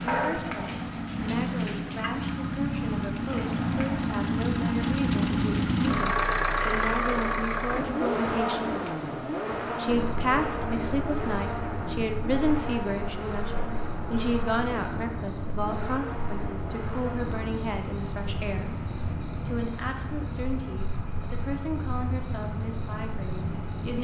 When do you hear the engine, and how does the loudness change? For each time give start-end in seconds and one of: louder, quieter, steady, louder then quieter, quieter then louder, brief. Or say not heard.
0.0-23.9 quieter.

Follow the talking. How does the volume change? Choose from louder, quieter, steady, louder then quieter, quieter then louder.
louder then quieter.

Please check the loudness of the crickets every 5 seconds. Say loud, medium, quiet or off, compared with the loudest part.
loud, loud, medium, medium, medium.